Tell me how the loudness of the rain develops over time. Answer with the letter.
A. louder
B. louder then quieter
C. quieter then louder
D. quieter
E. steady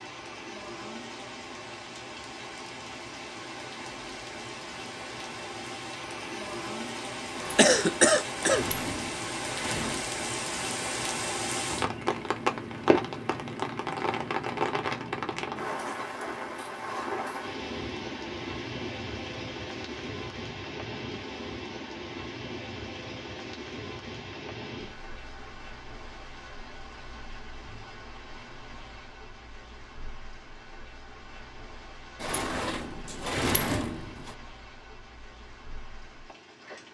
B.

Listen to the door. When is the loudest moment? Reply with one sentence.
The loudest moment of the door is at 34 seconds.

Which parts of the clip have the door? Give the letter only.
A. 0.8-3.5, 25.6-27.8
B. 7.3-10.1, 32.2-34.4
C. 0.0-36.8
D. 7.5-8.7
B.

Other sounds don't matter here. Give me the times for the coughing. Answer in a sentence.
You can hear the coughing from 7.5 to 8.7 s.